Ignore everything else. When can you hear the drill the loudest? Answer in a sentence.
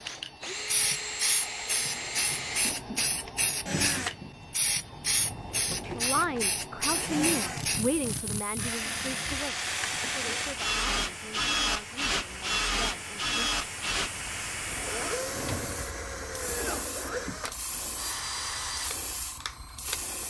The loudest moment of the drill is at 11 seconds.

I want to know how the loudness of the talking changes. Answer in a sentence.
The volume of the talking goes down.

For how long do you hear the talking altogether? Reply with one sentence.
You can hear the talking for 8 seconds altogether.